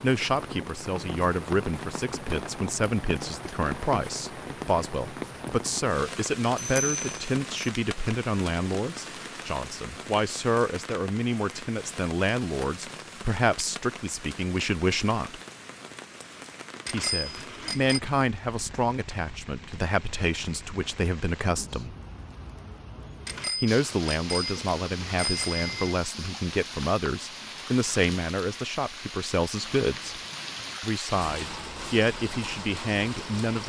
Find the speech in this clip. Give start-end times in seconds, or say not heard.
0.0-15.4, 16.9-21.9, 23.6-30.1, 30.8-33.6.